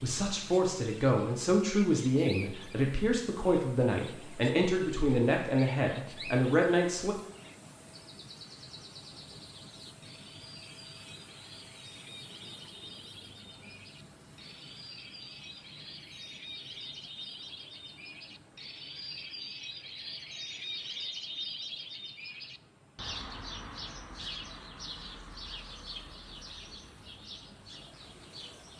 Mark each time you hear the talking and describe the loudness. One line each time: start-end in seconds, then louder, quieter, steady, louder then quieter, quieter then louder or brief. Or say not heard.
0.0-7.2 steady.